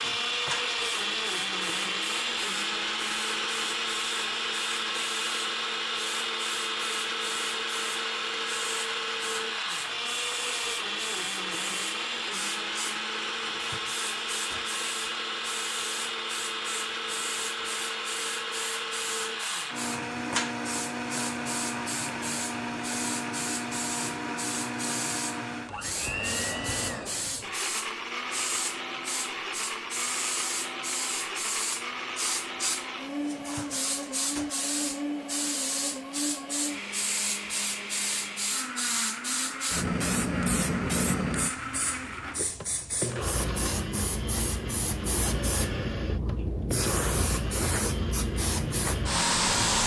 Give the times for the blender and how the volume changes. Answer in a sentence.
The blender can be heard from 0.0 to 49.8 s, getting quieter.